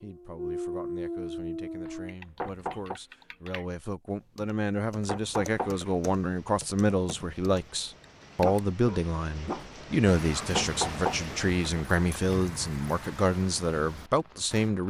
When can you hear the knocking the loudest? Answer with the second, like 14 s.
11 s.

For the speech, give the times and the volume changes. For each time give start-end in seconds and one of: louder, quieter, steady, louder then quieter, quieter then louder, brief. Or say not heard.
0.0-14.8 louder.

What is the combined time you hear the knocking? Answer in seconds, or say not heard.
2 s.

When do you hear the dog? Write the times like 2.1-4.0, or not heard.
0.0-2.1, 8.4-14.7.